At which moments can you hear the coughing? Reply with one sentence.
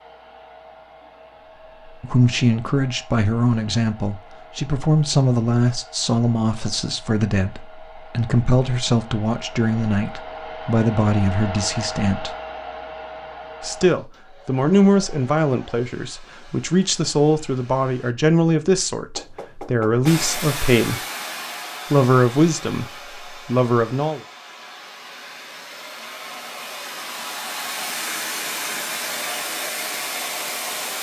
You can't hear the coughing here.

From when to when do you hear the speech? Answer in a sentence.
You can hear the speech from 1.9 to 12.3 s, from 13.6 to 21.0 s and from 21.9 to 24.2 s.